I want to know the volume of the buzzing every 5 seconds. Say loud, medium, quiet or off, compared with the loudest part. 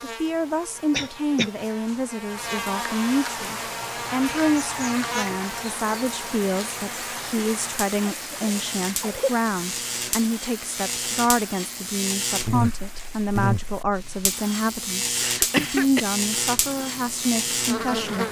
medium, medium, loud, loud.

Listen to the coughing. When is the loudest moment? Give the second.
16 s.